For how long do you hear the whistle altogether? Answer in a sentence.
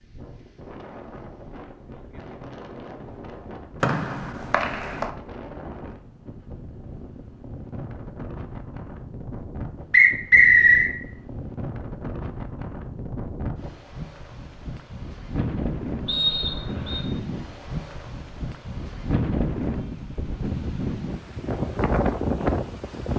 You can hear the whistle for 3 seconds altogether.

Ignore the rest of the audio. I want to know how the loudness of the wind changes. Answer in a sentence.
The volume of the wind goes up.